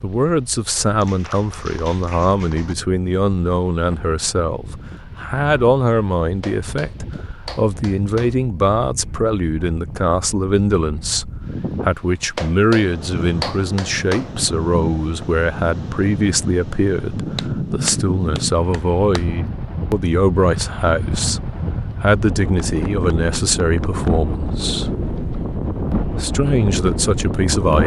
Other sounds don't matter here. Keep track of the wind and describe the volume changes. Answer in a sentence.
The volume of the wind goes up.